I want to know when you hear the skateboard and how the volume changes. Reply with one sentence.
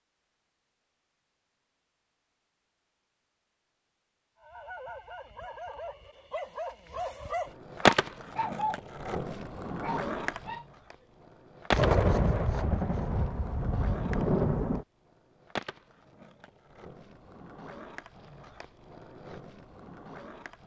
The skateboard can be heard from 7.5 to 20.6 s, getting quieter.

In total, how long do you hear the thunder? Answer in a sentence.
The thunder can be heard for 3 seconds in total.